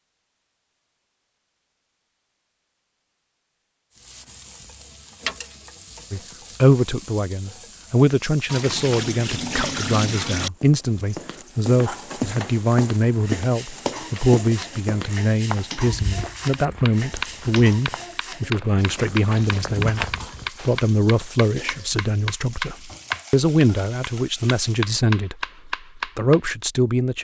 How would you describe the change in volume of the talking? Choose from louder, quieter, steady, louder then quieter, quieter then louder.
steady.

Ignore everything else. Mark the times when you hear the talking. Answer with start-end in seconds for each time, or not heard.
6.1-20.1, 20.6-27.1.